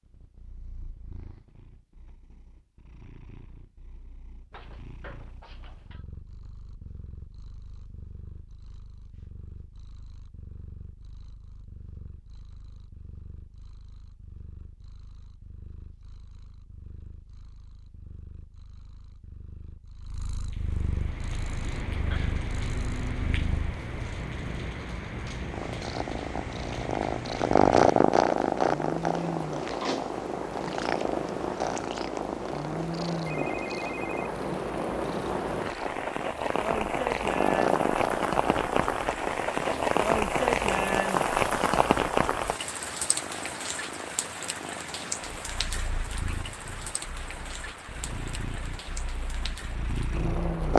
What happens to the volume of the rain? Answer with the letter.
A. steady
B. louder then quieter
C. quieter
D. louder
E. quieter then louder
B.